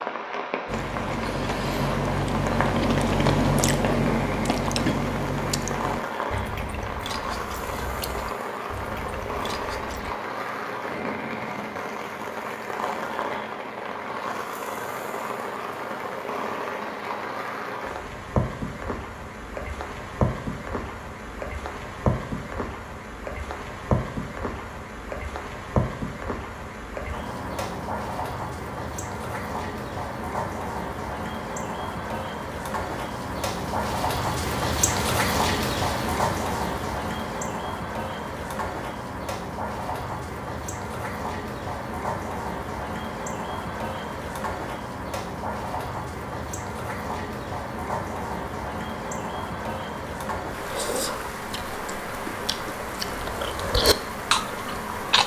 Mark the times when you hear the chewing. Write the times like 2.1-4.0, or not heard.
0.7-10.2, 50.6-55.2.